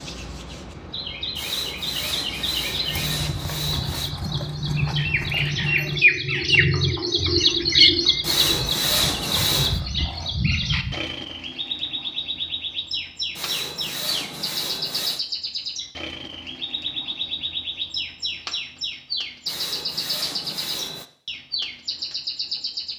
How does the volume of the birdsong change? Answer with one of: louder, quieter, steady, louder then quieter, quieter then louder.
louder then quieter.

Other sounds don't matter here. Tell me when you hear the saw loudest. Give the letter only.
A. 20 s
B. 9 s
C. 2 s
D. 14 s
B.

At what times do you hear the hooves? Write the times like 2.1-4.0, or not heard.
2.9-10.9.